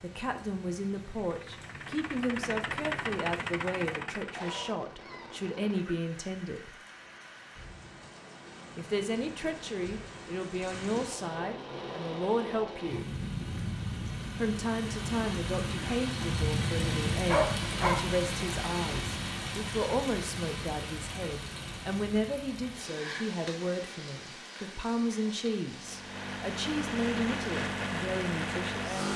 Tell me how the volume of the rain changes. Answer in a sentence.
The volume of the rain goes up, then down.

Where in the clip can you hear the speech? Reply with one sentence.
The speech can be heard from 0.0 to 6.7 s, from 8.8 to 13.1 s and from 14.4 to 28.9 s.